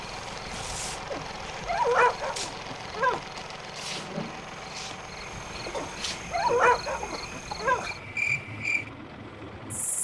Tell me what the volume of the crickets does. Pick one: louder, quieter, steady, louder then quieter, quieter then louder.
louder.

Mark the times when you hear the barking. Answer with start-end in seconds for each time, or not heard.
0.7-3.2, 5.5-7.8.